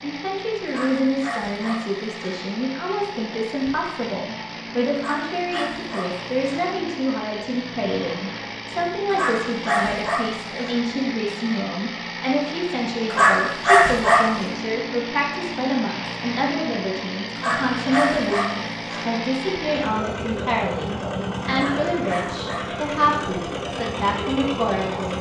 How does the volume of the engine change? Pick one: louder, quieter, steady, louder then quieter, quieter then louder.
louder.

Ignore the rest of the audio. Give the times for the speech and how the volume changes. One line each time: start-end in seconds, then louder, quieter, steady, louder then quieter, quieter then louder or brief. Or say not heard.
0.0-25.1 steady.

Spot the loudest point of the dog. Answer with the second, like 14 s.
14 s.